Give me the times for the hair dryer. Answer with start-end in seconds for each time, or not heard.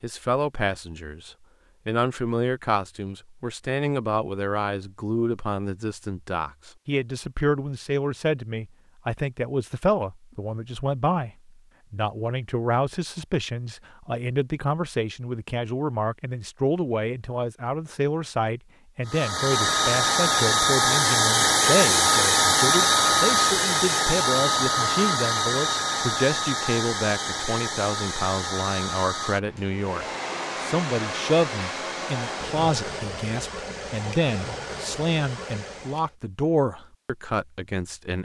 19.1-36.1.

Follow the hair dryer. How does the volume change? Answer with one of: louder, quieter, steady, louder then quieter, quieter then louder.
quieter.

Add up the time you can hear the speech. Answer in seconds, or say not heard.
38 s.